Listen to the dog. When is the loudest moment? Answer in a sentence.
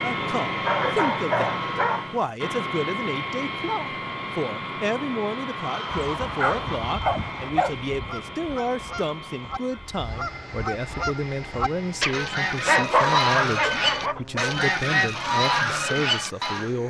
The volume of the dog peaks at 13 seconds.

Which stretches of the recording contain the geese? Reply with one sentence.
The geese can be heard from 5.6 to 16.7 s.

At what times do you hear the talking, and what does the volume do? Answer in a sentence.
You can hear the talking from 0.0 to 16.8 s, at a steady volume.